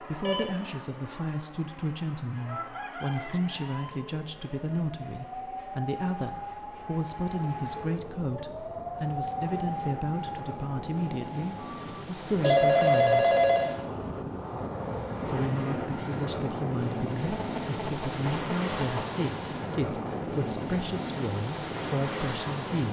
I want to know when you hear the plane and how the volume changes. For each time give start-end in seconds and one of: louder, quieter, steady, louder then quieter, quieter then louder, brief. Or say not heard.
0.0-22.8 louder.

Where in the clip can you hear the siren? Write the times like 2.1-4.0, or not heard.
2.3-12.0.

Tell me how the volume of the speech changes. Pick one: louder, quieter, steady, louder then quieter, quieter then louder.
steady.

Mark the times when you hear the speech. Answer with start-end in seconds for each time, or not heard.
0.0-13.3, 15.2-22.8.